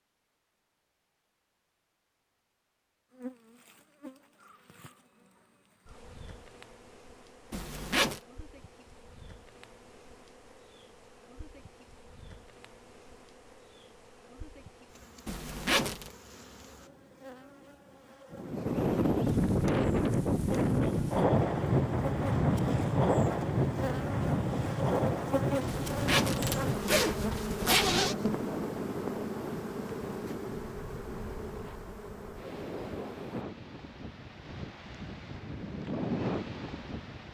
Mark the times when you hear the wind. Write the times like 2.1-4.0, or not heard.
18.3-37.3.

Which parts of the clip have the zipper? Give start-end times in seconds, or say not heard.
7.5-8.2, 15.2-16.1, 25.6-28.1.